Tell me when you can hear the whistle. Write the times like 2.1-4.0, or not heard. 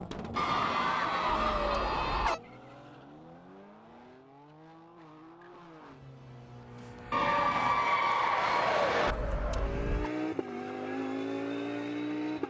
not heard.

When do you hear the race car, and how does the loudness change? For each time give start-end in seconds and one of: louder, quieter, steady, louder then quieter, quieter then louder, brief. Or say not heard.
0.0-12.4 quieter then louder.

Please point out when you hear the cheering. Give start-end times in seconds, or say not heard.
0.3-2.4, 7.1-9.2.